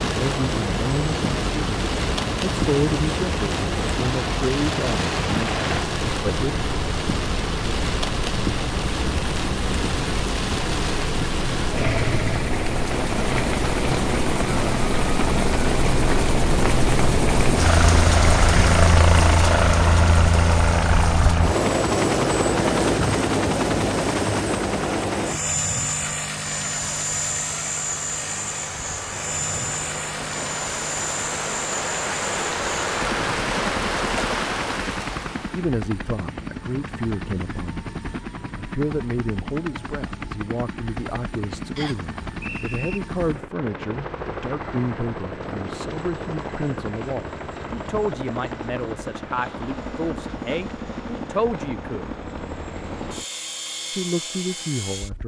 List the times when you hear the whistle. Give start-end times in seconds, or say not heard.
41.8-43.0.